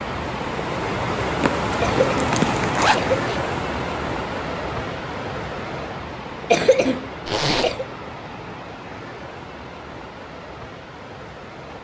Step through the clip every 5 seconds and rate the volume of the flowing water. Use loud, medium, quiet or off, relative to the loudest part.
loud, medium, quiet.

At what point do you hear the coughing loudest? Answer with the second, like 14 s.
7 s.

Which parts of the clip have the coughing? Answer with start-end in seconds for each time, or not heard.
1.8-3.2, 6.5-7.8.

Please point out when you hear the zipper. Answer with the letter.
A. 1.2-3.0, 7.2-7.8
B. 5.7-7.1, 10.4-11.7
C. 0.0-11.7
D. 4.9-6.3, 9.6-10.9
A.